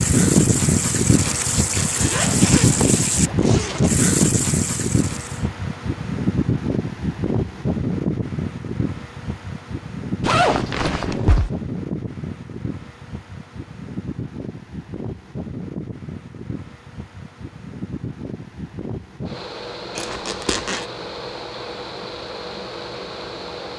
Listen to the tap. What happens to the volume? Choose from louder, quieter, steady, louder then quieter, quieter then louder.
steady.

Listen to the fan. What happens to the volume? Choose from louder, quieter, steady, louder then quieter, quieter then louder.
quieter.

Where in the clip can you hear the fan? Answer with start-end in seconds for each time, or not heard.
0.0-23.7.